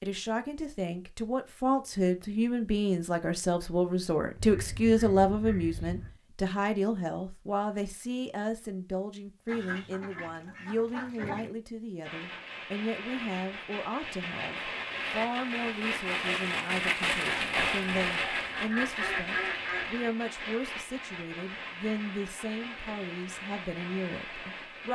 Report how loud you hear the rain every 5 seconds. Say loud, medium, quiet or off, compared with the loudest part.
off, off, medium, loud, medium.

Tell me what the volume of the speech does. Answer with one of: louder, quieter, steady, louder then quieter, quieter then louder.
quieter.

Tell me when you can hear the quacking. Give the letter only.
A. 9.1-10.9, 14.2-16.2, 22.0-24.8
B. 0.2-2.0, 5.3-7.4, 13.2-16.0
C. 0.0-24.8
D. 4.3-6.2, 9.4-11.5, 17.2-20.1
D.